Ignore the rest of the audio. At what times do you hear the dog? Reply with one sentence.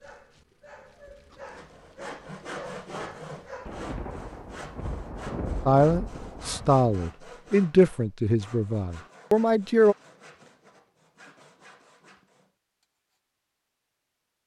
You can hear the dog from 0.0 to 3.7 s.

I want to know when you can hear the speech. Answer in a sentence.
You can hear the speech from 5.7 to 9.9 s.